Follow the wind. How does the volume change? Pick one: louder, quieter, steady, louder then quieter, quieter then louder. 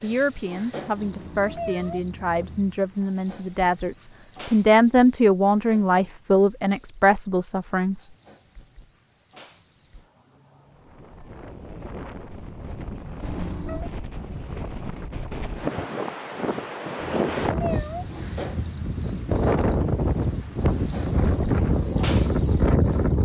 louder.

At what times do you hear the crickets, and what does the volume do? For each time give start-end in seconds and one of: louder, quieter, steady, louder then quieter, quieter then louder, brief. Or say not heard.
0.0-23.1 quieter then louder.